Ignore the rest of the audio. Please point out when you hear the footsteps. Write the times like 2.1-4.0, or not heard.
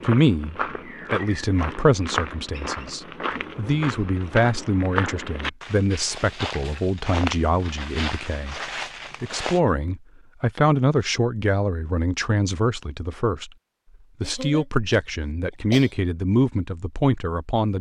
0.0-9.6.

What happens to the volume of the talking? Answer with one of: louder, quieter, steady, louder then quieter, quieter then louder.
steady.